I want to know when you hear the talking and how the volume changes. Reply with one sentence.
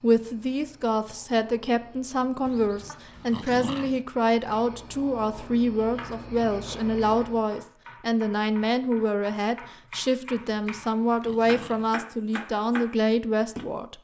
The talking can be heard from 0.0 to 13.9 s, at a steady volume.